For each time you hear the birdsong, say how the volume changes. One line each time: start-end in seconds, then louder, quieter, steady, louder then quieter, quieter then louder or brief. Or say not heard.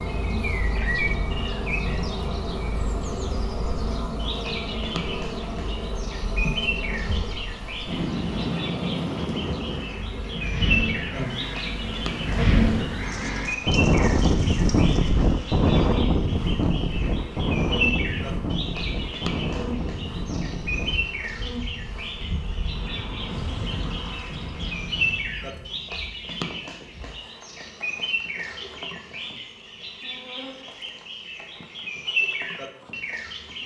0.0-33.6 steady.